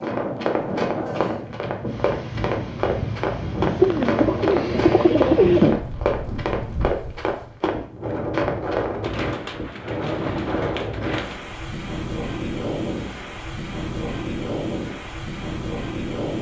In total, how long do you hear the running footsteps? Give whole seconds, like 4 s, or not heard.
9 s.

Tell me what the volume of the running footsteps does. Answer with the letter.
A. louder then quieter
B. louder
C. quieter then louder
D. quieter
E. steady
E.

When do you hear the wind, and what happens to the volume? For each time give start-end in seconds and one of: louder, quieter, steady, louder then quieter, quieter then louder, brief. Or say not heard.
0.0-16.3 steady.